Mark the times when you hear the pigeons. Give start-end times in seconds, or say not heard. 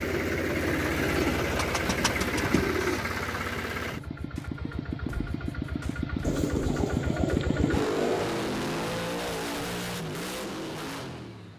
1.0-3.0, 6.2-8.2.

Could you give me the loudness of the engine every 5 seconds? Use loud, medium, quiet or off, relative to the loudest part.
loud, loud, medium.